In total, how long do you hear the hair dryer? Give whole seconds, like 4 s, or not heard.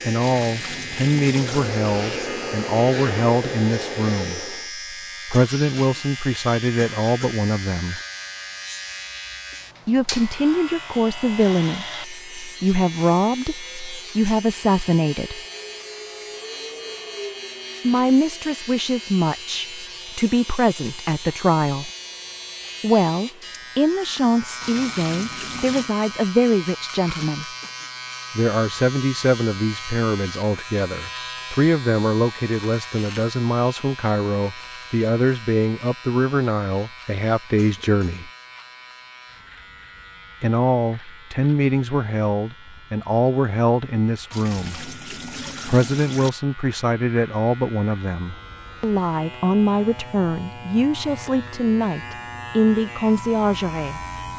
5 s.